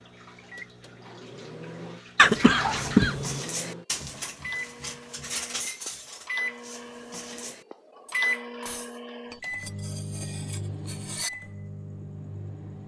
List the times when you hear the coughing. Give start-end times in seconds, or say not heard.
2.1-3.4.